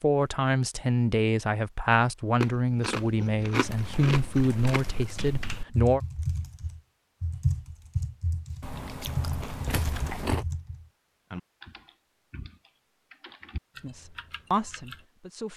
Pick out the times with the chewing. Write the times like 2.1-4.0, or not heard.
2.4-5.1, 8.6-10.4.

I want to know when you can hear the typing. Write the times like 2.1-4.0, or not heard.
3.6-15.1.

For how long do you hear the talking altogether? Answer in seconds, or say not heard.
8 s.